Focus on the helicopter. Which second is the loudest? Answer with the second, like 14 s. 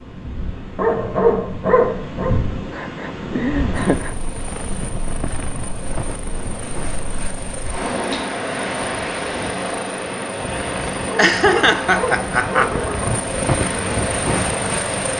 14 s.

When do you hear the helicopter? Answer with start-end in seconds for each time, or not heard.
3.8-15.1.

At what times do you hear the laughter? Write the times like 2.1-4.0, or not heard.
2.7-4.2, 11.2-12.8.